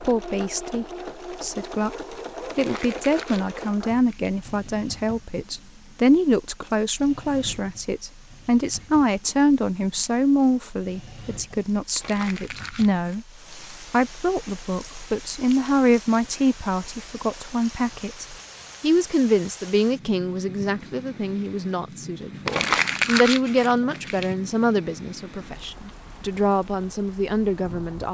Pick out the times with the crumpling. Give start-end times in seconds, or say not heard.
2.5-4.3, 11.9-13.2, 22.4-24.3.